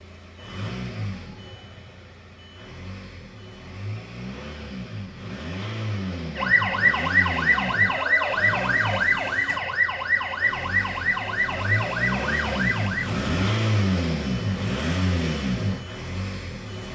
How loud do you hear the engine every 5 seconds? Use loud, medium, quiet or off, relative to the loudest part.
medium, medium, loud, loud.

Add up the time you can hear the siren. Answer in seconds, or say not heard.
7 s.